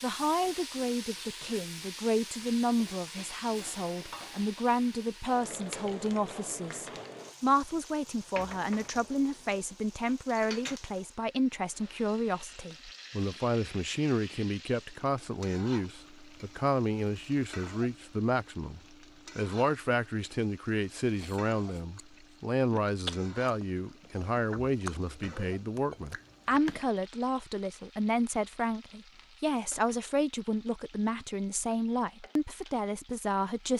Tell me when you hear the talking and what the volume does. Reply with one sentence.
The talking can be heard from 0.0 to 33.7 s, at a steady volume.